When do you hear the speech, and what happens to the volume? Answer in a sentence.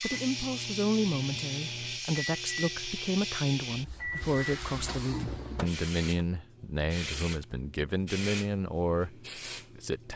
The speech can be heard from 0.0 to 10.1 s, at a steady volume.